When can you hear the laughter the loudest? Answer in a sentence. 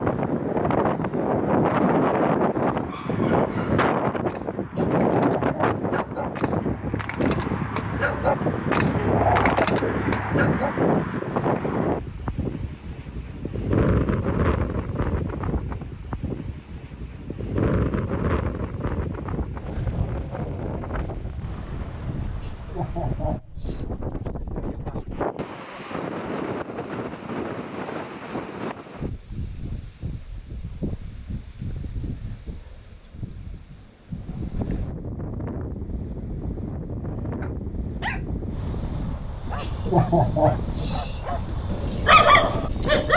The volume of the laughter peaks at 40 seconds.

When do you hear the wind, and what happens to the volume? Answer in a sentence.
The wind can be heard from 0.0 to 43.1 s, getting quieter.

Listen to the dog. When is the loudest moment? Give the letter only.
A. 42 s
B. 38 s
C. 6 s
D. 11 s
A.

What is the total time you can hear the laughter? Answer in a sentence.
The laughter can be heard for 4 seconds in total.